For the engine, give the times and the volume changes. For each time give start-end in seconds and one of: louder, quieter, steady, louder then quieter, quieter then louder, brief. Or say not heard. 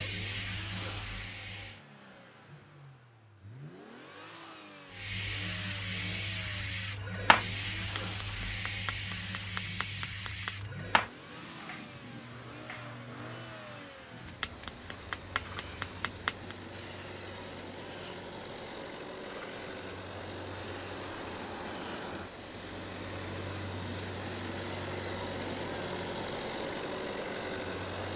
0.0-28.1 louder.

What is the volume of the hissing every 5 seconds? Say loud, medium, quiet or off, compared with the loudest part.
loud, loud, medium, quiet, quiet, off.